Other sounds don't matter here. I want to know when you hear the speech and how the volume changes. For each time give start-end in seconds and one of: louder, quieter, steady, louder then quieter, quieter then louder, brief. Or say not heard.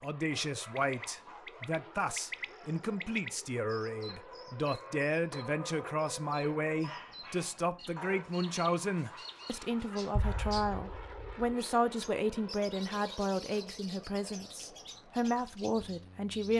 0.0-16.5 steady.